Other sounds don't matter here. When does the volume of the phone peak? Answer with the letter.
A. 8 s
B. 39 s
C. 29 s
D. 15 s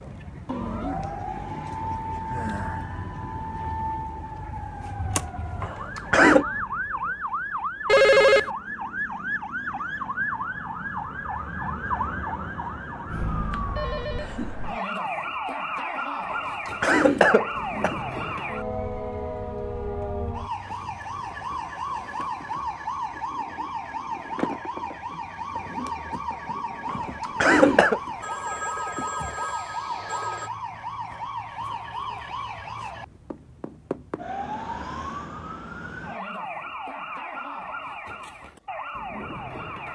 A.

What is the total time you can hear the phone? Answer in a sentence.
The phone can be heard for 4 seconds in total.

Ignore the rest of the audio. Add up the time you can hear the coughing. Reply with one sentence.
The coughing can be heard for 4 seconds in total.